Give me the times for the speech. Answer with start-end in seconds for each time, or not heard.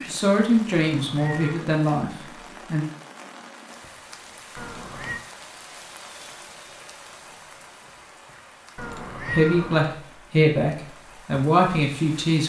0.1-2.9, 9.2-12.4.